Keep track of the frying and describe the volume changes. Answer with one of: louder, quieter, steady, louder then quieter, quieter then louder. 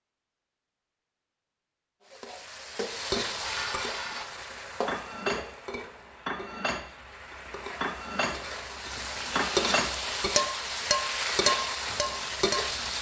quieter then louder.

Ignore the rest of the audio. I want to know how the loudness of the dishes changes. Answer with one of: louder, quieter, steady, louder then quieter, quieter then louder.
louder.